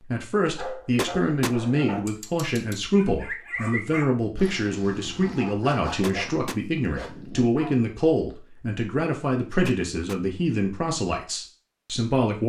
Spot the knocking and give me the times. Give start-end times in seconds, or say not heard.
0.9-1.6, 6.0-6.6, 9.7-10.2.